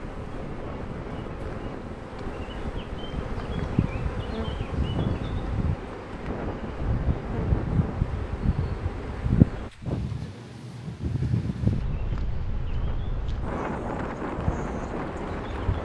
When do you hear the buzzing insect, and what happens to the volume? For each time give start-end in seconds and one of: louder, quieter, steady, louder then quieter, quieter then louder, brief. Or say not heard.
0.0-9.7 louder
11.8-15.8 louder.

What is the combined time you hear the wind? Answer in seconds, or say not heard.
16 s.